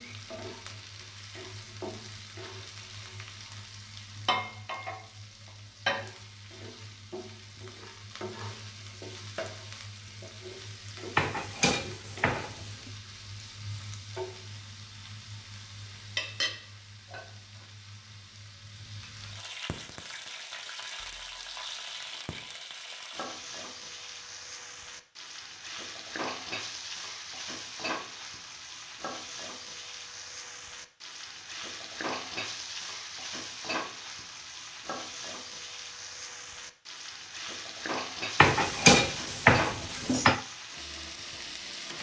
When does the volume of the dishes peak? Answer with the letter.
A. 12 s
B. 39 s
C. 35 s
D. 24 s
B.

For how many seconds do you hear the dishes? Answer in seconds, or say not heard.
4 s.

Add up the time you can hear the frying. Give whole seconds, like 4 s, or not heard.
42 s.